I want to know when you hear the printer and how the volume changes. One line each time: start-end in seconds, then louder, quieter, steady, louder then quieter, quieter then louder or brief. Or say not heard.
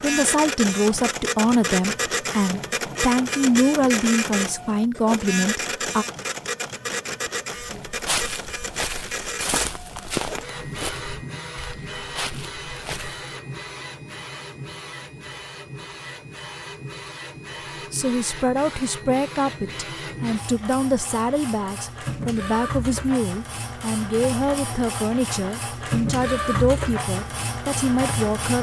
0.0-28.5 quieter then louder.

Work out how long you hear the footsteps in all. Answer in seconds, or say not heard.
5 s.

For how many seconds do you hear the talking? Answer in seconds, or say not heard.
17 s.